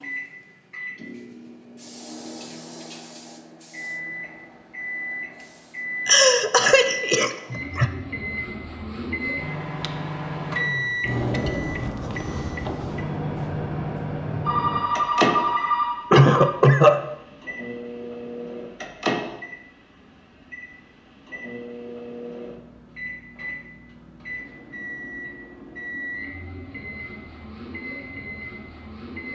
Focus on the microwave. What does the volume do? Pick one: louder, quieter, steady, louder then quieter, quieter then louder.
louder then quieter.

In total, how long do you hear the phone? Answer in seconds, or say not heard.
2 s.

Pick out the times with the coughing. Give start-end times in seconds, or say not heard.
6.0-7.9, 16.1-17.0.